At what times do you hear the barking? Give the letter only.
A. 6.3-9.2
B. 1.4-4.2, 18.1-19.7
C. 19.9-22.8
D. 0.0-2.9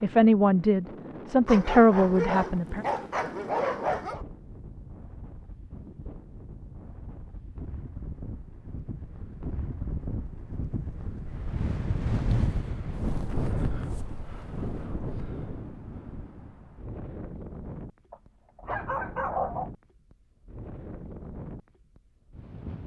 B.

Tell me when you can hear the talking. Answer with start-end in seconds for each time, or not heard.
0.0-2.9.